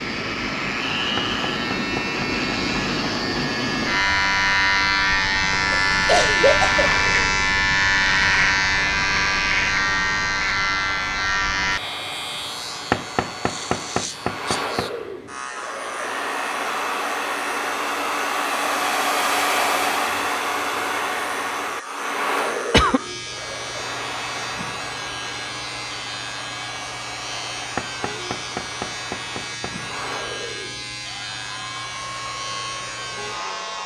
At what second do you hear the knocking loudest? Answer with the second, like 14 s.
13 s.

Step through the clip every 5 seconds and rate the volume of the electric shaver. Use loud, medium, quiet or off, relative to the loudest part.
loud, loud, medium, quiet, quiet, quiet, quiet.